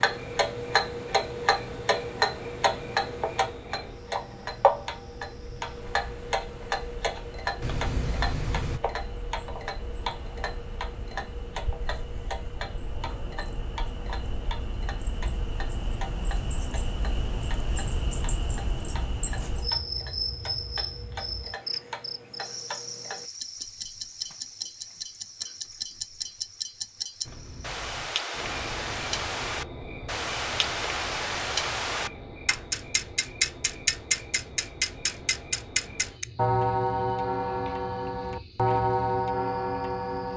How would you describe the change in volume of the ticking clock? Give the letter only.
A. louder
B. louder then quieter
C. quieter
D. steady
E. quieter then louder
E.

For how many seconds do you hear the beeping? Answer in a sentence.
The beeping can be heard for 2 seconds in total.